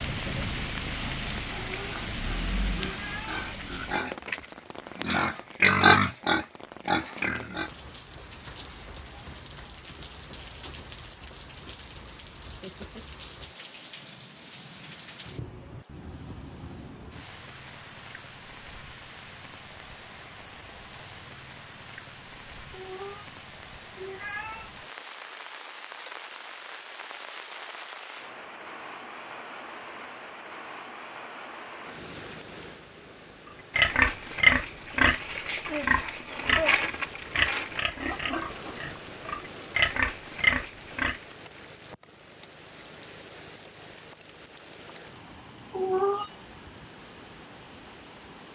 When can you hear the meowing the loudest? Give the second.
46 s.